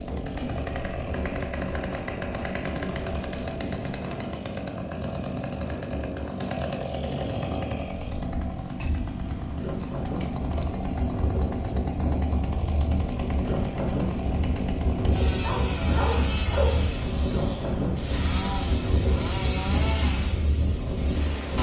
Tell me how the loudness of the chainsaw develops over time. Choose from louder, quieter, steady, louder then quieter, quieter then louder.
steady.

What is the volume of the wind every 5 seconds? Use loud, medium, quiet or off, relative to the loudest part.
medium, medium, loud, loud, loud.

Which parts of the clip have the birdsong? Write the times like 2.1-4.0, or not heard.
not heard.